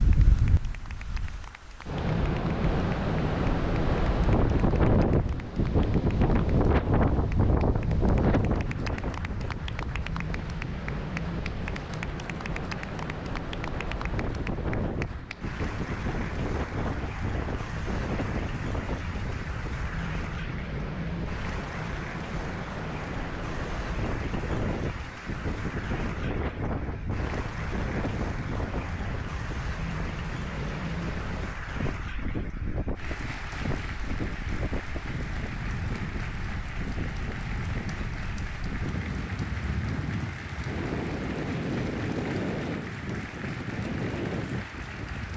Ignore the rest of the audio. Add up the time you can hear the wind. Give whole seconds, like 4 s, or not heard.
45 s.